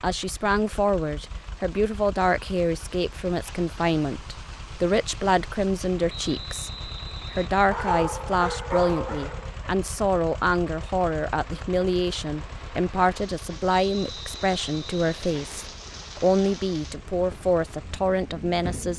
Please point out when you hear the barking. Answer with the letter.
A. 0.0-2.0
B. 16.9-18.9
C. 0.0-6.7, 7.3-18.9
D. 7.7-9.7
D.